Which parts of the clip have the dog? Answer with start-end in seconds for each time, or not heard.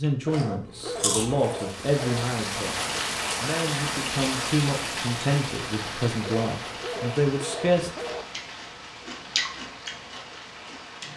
0.2-2.2, 6.2-8.2.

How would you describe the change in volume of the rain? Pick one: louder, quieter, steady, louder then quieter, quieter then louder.
quieter.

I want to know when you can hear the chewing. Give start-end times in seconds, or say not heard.
0.0-1.6, 8.2-11.1.